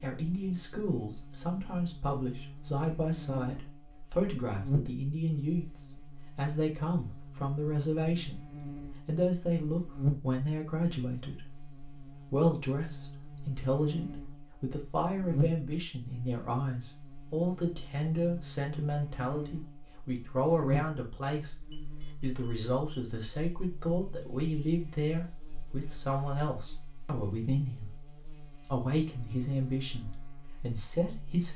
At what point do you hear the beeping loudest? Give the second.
23 s.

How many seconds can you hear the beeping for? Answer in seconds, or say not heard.
2 s.